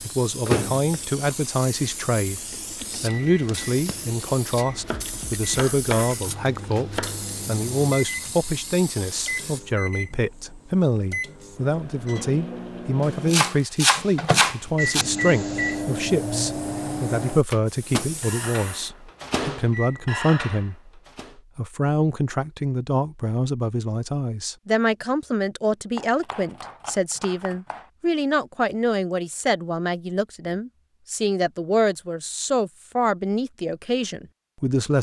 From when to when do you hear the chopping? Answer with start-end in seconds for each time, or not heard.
4.7-7.2, 13.3-15.1, 25.9-27.9.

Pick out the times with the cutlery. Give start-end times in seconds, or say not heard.
not heard.